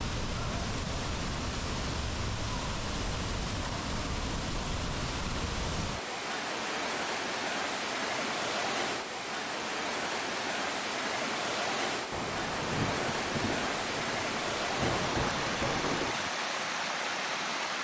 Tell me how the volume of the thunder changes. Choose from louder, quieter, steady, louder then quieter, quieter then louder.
quieter then louder.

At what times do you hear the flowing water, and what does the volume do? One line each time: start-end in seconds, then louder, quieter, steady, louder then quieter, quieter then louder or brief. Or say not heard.
0.0-17.7 steady.